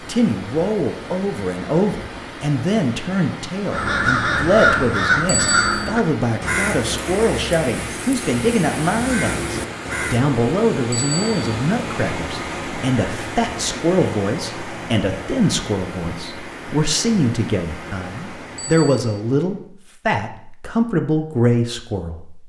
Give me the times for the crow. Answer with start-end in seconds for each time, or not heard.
3.7-10.2.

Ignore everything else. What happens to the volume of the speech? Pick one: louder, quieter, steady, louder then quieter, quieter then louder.
steady.